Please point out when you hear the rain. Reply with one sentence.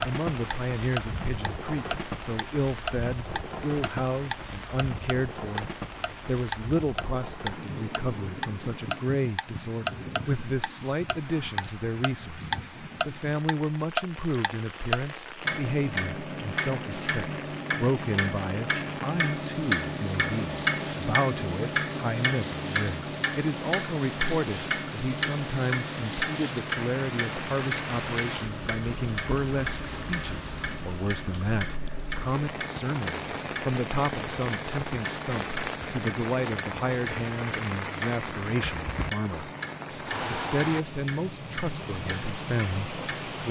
You can hear the rain from 0.0 to 43.4 s.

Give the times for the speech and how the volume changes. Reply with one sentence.
The speech can be heard from 0.0 to 43.4 s, at a steady volume.